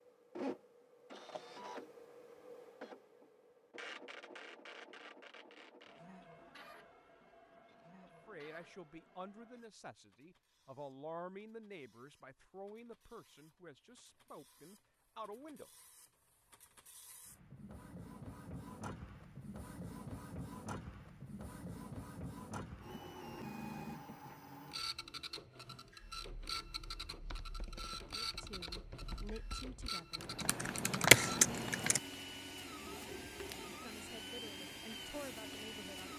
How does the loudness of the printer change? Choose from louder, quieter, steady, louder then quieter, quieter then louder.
quieter then louder.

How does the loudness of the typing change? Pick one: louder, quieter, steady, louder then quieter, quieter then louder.
louder.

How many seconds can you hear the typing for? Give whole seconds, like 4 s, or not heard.
6 s.